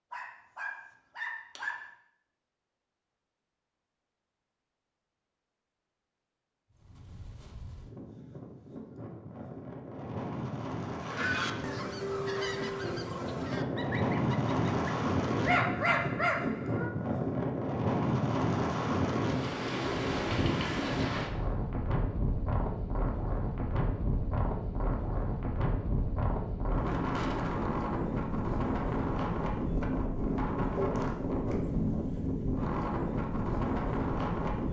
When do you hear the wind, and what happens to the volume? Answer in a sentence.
The wind can be heard from 6.7 to 34.6 s, getting louder.